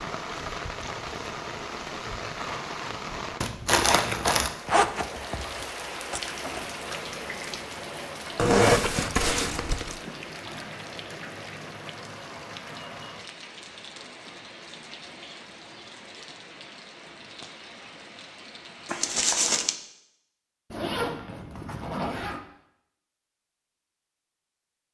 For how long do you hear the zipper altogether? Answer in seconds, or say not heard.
5 s.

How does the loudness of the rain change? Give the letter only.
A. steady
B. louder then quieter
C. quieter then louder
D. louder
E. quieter
E.